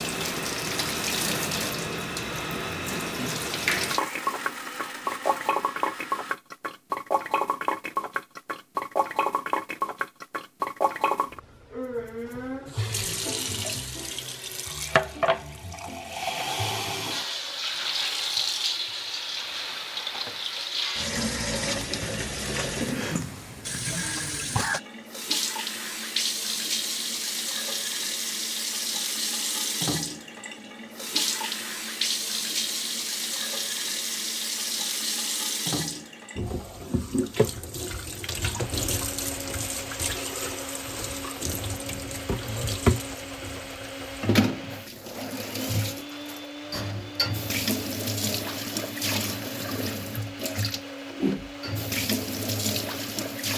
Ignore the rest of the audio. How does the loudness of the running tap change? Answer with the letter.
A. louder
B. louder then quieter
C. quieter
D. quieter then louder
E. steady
E.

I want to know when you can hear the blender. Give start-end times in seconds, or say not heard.
0.1-6.3, 38.6-53.5.